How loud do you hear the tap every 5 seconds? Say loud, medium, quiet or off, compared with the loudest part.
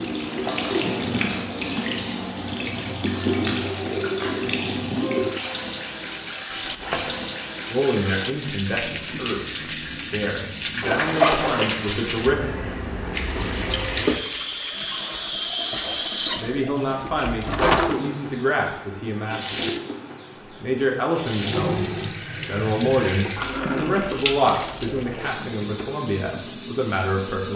loud, loud, loud, loud, loud, medium.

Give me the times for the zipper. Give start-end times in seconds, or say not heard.
6.6-7.2, 10.8-11.8, 24.9-25.9.